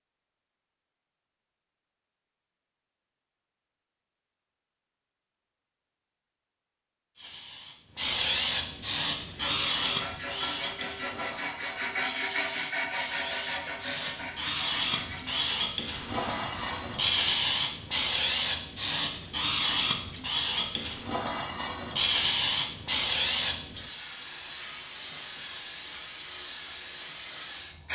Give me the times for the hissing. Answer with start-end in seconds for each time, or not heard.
7.2-27.9.